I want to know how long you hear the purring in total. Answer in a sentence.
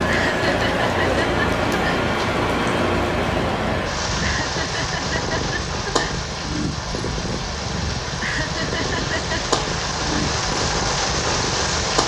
The purring can be heard for 12 seconds in total.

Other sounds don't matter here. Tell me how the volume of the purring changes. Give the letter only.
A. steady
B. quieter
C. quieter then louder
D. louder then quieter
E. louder
A.